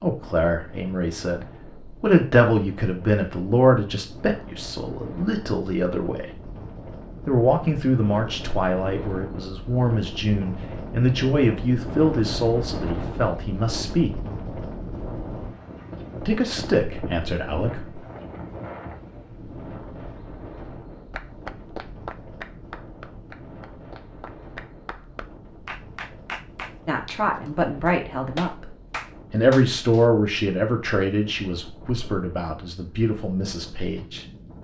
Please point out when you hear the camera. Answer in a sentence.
The camera can't be heard in this clip.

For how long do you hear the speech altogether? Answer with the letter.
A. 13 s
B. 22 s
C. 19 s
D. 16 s
B.